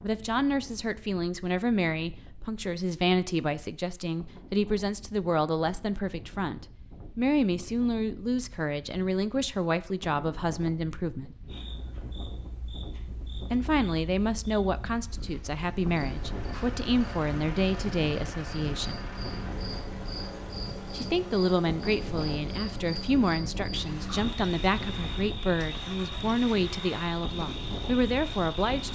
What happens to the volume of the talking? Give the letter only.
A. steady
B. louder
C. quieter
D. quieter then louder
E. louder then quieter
A.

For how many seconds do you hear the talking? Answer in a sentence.
The talking can be heard for 25 seconds in total.